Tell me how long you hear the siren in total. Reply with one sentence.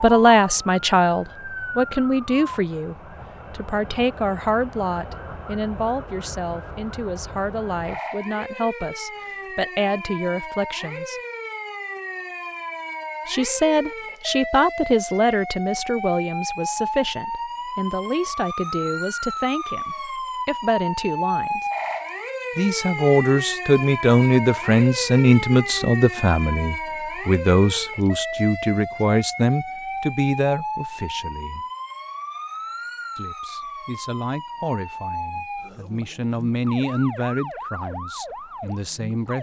The siren can be heard for 39 seconds in total.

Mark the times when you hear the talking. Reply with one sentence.
You can hear the talking from 0.0 to 11.2 s, from 13.2 to 21.6 s, from 22.6 to 31.6 s and from 33.1 to 39.3 s.